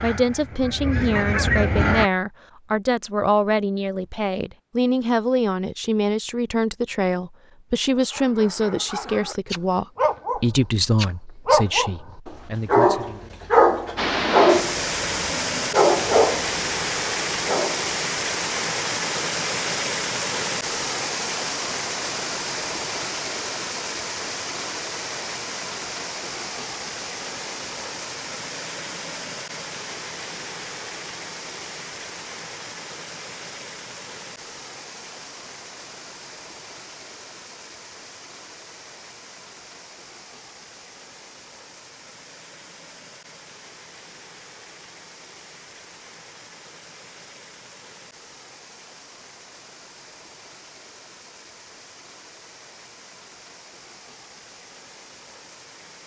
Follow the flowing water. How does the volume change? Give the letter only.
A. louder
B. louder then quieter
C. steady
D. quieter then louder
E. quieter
E.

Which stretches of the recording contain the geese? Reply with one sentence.
You can hear the geese from 0.0 to 2.1 s.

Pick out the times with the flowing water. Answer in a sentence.
The flowing water can be heard from 13.9 to 56.0 s.